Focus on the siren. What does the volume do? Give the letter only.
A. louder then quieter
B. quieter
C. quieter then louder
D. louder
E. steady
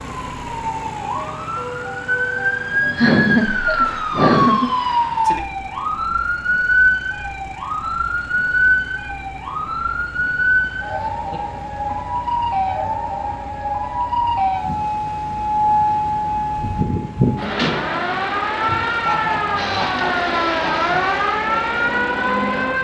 E.